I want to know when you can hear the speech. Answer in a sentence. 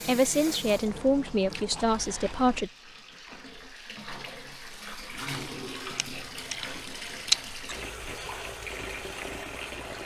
The speech can be heard from 0.1 to 2.7 s.